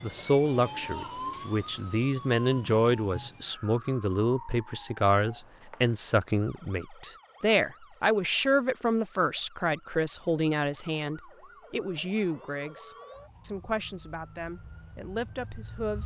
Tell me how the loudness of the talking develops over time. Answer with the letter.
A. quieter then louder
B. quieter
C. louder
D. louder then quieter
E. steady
B.